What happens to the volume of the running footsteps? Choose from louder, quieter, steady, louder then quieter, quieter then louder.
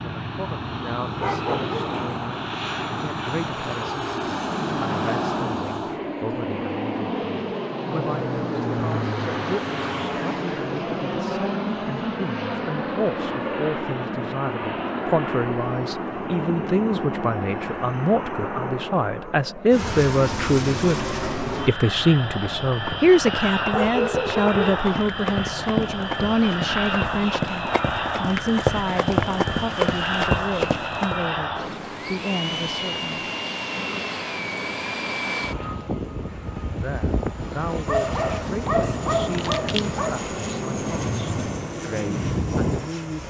louder.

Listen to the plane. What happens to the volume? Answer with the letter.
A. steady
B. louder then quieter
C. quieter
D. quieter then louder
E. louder
A.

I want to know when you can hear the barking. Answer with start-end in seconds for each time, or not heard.
1.2-2.0, 23.7-24.6, 37.9-40.1.